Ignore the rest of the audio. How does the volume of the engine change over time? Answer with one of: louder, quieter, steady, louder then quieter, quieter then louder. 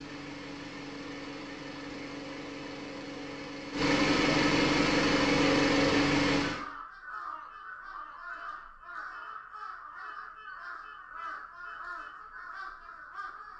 louder.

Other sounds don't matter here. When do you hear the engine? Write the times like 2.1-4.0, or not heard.
0.0-6.7.